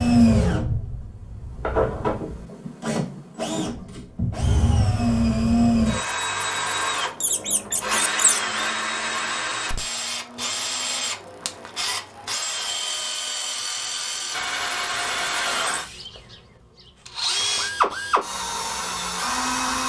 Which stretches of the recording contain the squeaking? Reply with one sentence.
The squeaking can be heard from 7.2 to 8.4 s.